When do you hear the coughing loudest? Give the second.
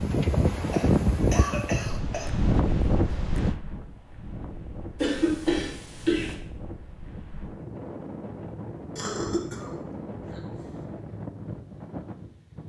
5 s.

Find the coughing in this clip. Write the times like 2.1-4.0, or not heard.
0.7-2.2, 5.0-6.3, 8.9-10.8.